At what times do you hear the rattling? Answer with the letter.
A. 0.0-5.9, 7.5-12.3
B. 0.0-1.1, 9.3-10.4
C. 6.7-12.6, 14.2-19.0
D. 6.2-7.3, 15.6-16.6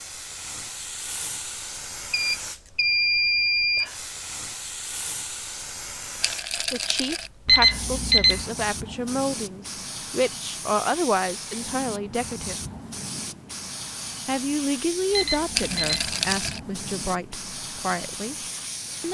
D.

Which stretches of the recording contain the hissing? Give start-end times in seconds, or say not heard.
0.0-19.0.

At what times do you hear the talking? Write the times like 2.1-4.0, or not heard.
6.7-12.6, 14.2-19.0.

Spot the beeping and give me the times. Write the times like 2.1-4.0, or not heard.
2.1-3.9, 7.5-8.4, 15.1-16.0.